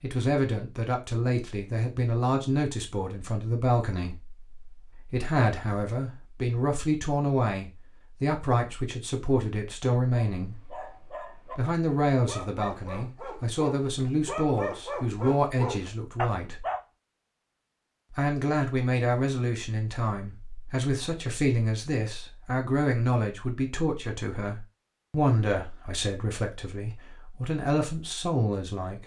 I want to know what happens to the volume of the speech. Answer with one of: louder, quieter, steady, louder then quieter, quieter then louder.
steady.